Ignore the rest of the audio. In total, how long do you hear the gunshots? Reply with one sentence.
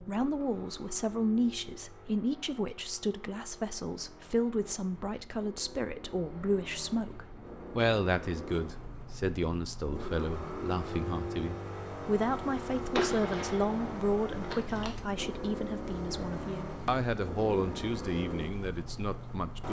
You can hear the gunshots for 2 seconds altogether.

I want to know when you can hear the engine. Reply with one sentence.
The engine can be heard from 0.0 to 19.6 s.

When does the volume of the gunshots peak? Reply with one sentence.
The volume of the gunshots peaks at 13 seconds.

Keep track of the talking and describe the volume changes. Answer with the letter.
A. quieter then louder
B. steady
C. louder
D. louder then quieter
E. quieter
B.